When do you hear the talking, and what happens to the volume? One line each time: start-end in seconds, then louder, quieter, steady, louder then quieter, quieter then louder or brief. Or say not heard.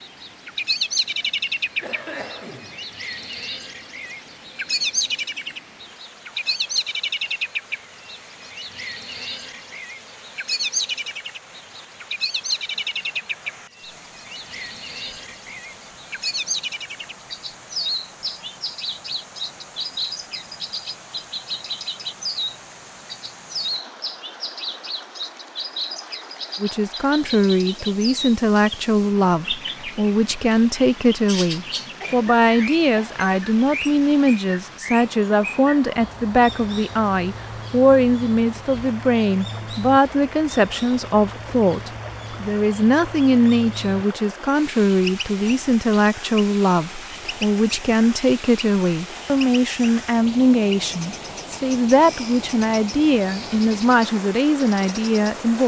26.6-55.6 steady.